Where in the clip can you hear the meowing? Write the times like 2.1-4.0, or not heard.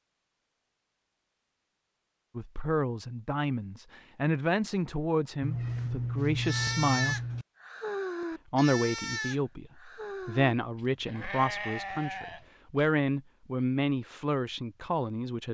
5.4-7.5.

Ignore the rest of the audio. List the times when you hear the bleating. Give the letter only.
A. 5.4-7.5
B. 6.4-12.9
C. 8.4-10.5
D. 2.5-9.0
B.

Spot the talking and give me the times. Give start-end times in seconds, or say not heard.
2.4-7.2, 8.5-15.4.